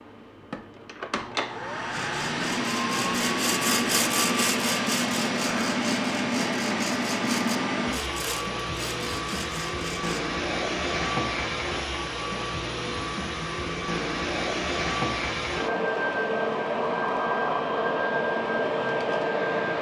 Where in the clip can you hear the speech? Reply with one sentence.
You can't hear the speech here.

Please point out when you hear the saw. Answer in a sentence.
You can hear the saw from 1.9 to 10.2 s.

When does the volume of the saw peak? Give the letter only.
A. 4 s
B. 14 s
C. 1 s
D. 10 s
A.